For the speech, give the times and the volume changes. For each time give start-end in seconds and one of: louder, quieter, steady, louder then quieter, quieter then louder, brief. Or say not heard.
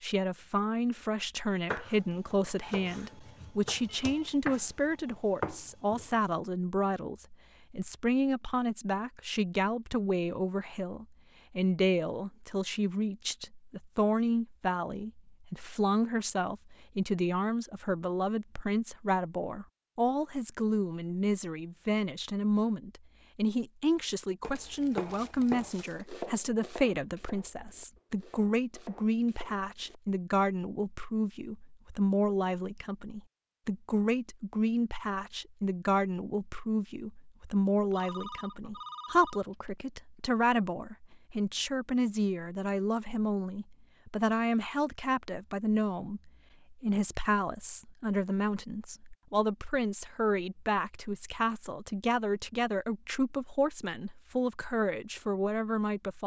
0.0-56.2 steady.